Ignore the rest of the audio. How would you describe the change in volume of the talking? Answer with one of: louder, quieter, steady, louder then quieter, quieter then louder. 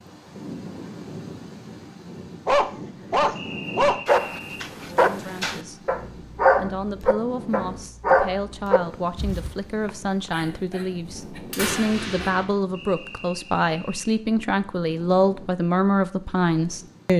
louder.